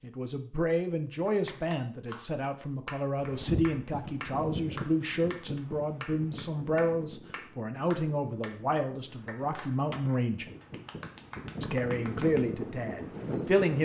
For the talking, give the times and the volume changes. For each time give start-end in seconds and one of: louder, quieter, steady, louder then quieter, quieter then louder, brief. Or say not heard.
0.0-10.4 steady
11.6-13.8 brief.